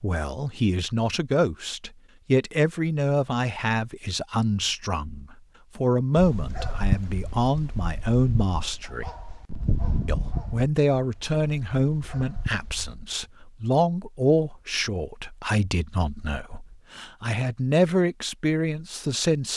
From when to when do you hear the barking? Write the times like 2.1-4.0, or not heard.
6.2-12.9.